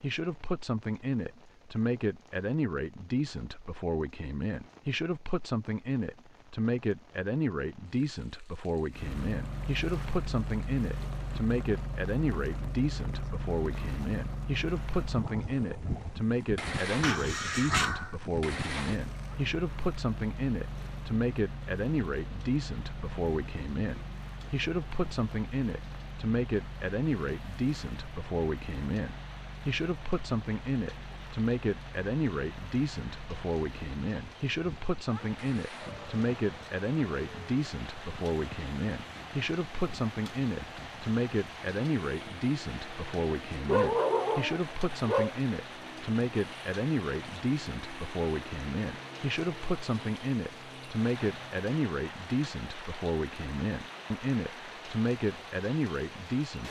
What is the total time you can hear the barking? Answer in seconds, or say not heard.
3 s.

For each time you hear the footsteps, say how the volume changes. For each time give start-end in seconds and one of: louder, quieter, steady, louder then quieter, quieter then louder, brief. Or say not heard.
not heard.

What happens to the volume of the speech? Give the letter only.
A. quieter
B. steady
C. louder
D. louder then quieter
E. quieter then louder
B.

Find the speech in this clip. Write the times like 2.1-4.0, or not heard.
0.0-56.6.